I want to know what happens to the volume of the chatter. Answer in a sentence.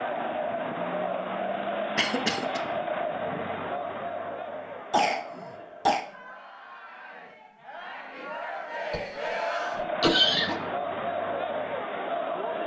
The volume of the chatter goes down, then up.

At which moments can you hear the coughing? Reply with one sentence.
You can hear the coughing from 1.9 to 2.6 s, from 4.9 to 6.0 s and from 8.9 to 10.6 s.